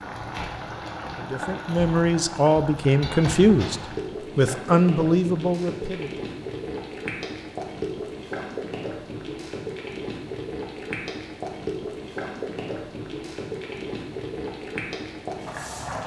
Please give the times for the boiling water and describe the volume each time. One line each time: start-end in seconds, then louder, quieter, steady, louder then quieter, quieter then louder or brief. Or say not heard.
0.0-16.0 steady.